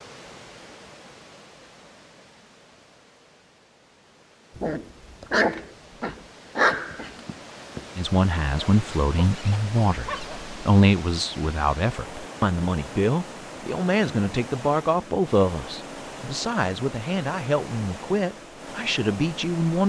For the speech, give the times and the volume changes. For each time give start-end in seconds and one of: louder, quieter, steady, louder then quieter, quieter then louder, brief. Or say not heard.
8.0-19.8 steady.